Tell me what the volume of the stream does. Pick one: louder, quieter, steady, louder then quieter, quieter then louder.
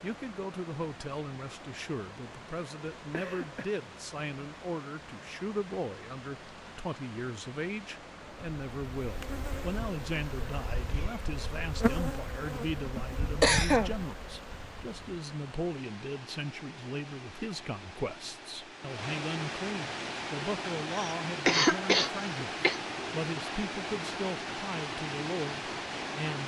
louder.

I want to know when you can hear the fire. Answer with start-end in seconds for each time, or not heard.
not heard.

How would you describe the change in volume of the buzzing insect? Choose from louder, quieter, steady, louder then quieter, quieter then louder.
louder then quieter.